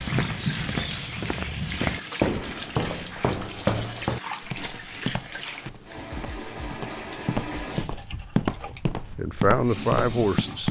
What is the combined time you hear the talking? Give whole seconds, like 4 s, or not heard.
2 s.